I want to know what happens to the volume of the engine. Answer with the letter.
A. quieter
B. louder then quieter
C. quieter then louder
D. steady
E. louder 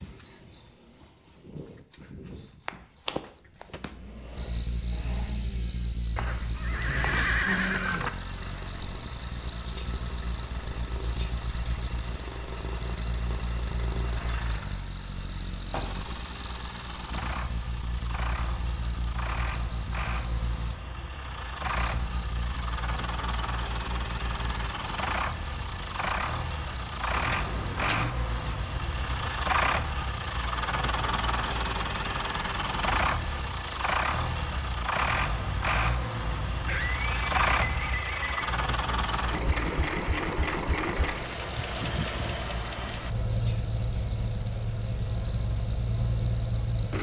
E.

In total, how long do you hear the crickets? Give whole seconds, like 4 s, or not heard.
47 s.